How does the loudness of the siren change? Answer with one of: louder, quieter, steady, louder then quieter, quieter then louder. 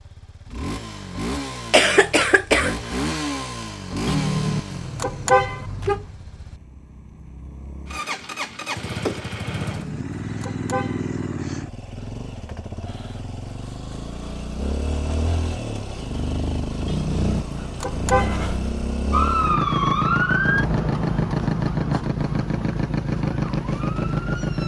quieter.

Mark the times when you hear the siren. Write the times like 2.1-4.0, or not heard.
19.1-24.6.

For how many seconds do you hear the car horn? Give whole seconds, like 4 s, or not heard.
5 s.